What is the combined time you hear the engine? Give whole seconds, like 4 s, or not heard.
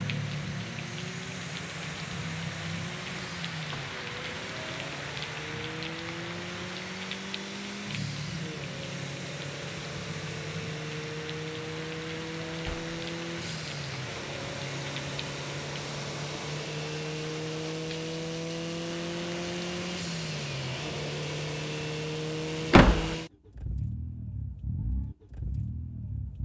26 s.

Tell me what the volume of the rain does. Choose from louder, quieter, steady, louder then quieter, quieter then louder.
quieter.